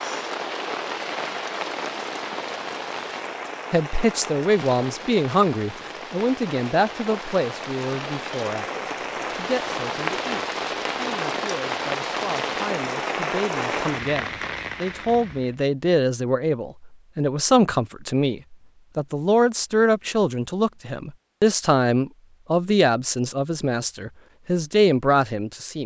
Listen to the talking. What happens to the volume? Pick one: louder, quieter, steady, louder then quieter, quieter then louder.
quieter then louder.